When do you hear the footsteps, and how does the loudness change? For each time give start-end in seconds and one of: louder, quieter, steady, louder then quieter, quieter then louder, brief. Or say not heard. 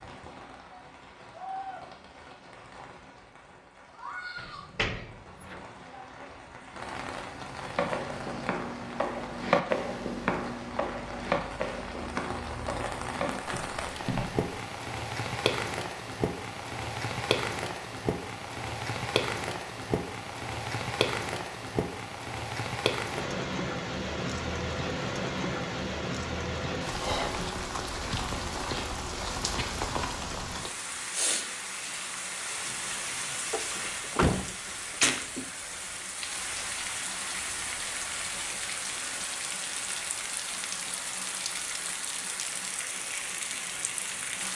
7.8-14.4 louder then quieter.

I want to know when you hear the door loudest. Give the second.
34 s.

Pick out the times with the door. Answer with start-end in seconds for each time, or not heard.
4.3-5.6, 33.5-35.5.